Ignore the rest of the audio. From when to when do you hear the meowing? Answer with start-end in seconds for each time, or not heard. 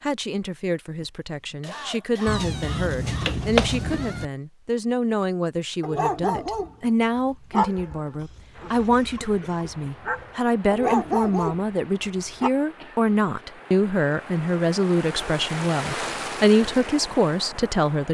2.2-4.2.